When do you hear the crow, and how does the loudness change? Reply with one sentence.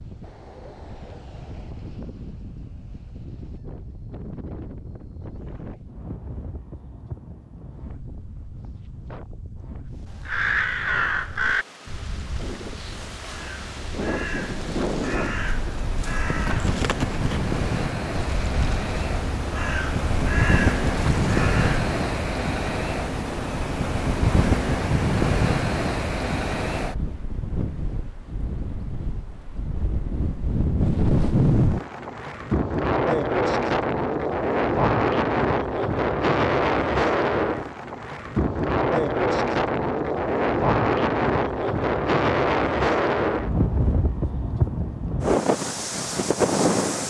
The crow can be heard from 10.2 to 21.8 s, getting quieter then louder.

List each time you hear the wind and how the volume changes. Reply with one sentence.
You can hear the wind from 0.0 to 47.0 s, getting louder.